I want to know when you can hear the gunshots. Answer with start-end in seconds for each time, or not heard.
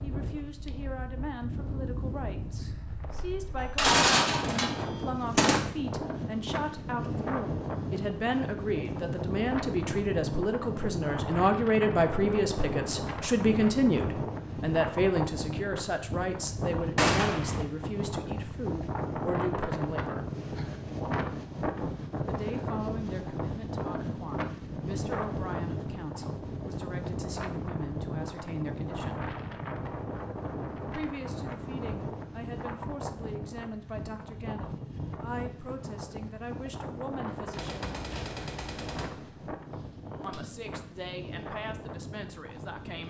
3.5-5.6, 16.9-17.6, 37.2-40.4.